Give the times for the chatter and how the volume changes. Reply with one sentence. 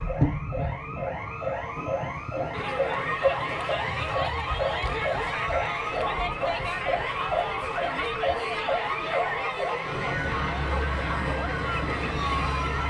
The chatter can be heard from 2.5 to 12.8 s, at a steady volume.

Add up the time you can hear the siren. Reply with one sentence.
You can hear the siren for 13 seconds altogether.